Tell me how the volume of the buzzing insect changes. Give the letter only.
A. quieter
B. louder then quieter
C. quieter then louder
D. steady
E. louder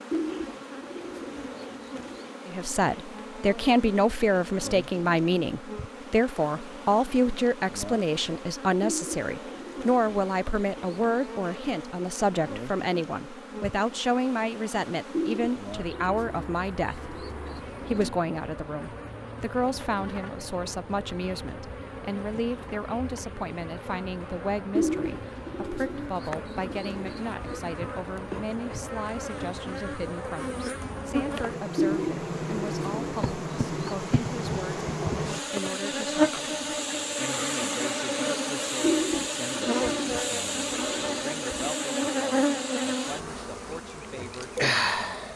E.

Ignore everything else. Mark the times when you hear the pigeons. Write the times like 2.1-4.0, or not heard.
0.1-2.3, 8.8-11.3, 15.1-18.1, 24.8-27.6, 31.8-34.0, 38.8-41.8.